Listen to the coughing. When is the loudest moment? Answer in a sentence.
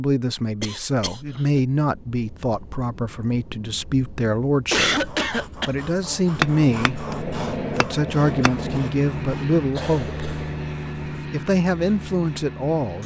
The loudest moment of the coughing is at 5 seconds.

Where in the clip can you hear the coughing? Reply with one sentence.
You can hear the coughing from 0.6 to 1.6 s, from 4.7 to 5.7 s and from 9.8 to 11.2 s.